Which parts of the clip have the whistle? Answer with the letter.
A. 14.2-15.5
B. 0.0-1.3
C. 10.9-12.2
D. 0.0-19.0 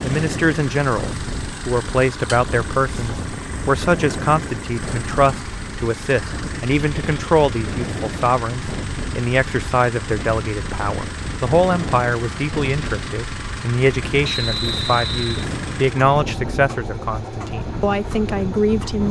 A.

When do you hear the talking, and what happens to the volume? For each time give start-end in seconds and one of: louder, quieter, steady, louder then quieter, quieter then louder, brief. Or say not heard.
0.0-19.0 steady.